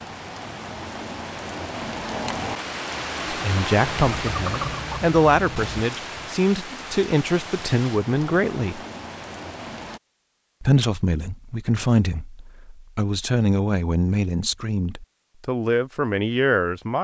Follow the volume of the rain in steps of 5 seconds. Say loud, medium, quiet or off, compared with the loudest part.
loud, medium, off, off.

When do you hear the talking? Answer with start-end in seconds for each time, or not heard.
3.3-8.8, 10.6-17.0.